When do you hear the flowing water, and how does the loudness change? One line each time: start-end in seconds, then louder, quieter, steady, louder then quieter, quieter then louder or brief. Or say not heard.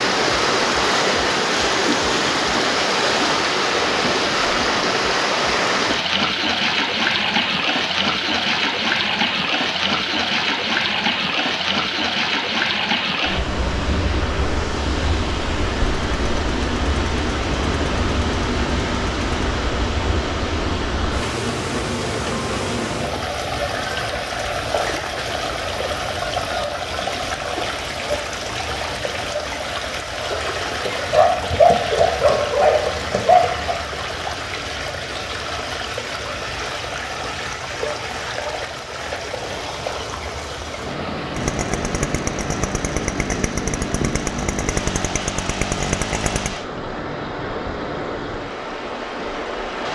0.0-49.8 quieter.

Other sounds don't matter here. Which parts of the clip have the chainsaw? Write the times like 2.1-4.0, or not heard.
15.8-19.5, 41.3-46.6.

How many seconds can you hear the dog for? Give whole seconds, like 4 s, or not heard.
3 s.